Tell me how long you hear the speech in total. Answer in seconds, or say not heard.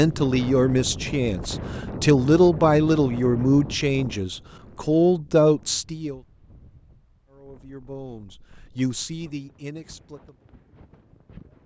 9 s.